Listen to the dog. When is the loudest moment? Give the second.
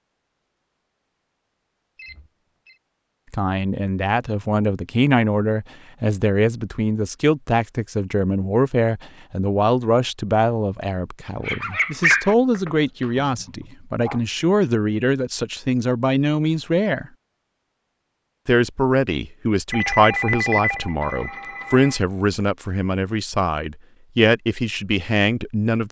12 s.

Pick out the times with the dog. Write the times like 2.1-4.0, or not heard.
11.4-14.2.